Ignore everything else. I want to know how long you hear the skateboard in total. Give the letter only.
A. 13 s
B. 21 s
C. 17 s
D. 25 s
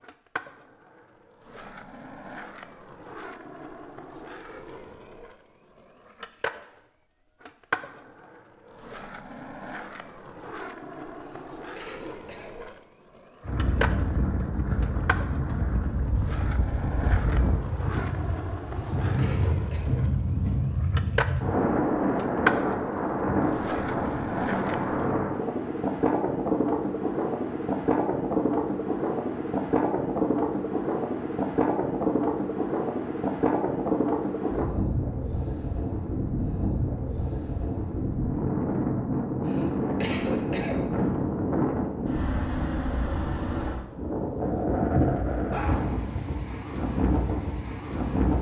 D.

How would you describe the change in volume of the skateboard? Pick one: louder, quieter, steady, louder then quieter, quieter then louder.
louder.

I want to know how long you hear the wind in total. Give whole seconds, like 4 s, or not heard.
35 s.